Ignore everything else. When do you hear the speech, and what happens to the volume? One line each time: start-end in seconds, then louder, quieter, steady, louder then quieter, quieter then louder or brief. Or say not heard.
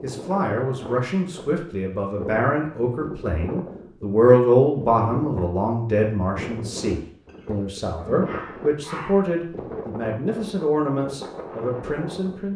0.0-12.5 louder then quieter.